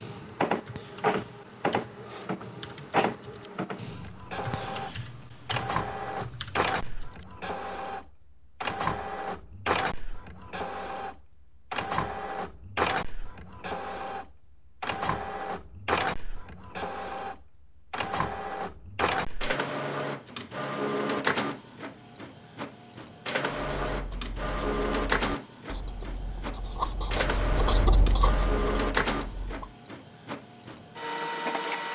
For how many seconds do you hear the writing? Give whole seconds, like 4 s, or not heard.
6 s.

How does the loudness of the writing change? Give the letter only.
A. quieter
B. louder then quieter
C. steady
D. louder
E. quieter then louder
B.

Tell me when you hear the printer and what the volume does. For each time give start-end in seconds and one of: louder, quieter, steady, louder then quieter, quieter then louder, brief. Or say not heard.
0.0-31.9 steady.